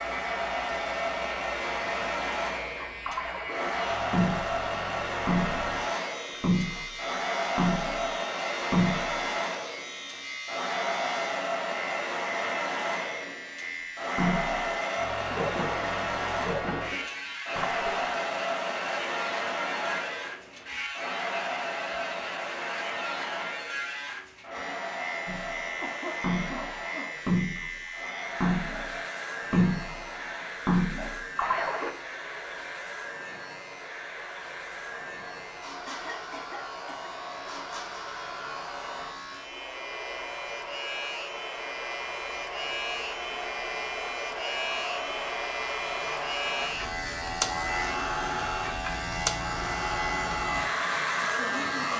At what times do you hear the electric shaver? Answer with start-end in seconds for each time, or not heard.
0.0-51.9.